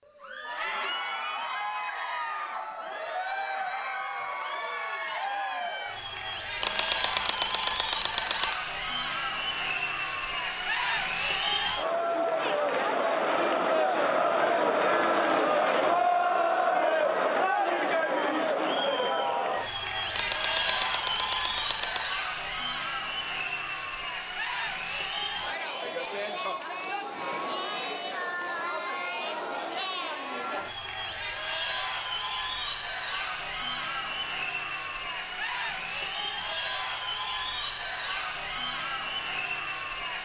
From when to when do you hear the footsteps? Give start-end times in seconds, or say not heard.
not heard.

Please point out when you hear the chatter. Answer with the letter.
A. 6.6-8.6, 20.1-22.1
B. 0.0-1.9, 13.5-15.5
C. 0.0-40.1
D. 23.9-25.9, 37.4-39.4
C.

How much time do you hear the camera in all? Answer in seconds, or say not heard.
4 s.